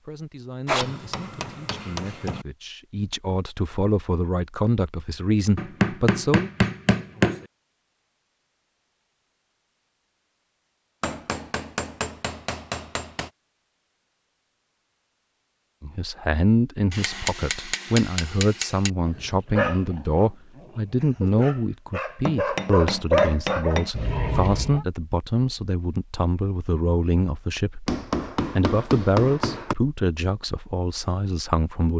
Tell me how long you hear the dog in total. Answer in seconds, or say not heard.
6 s.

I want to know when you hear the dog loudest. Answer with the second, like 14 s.
23 s.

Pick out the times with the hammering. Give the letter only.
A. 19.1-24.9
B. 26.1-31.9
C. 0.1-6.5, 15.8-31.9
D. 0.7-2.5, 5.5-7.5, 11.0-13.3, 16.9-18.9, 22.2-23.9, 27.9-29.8
D.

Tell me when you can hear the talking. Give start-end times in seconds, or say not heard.
0.1-6.5, 15.8-31.9.